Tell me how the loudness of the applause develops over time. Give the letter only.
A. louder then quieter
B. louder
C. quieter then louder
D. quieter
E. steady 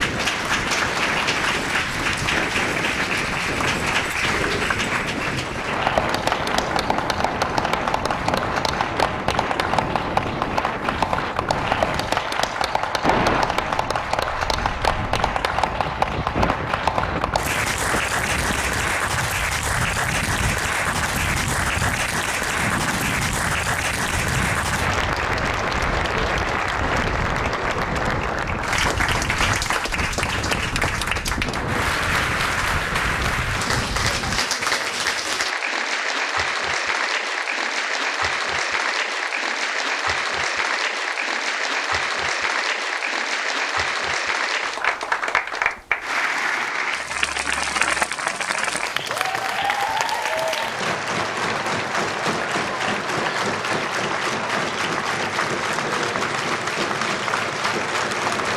E.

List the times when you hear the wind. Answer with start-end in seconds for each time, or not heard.
0.0-34.5.